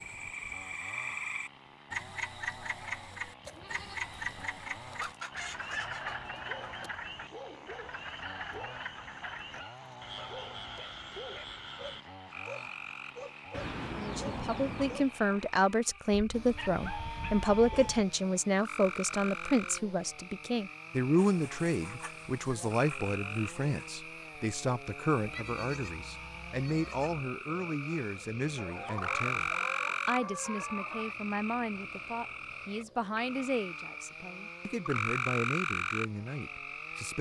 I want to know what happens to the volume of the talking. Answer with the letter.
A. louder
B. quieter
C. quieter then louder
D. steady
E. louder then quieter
B.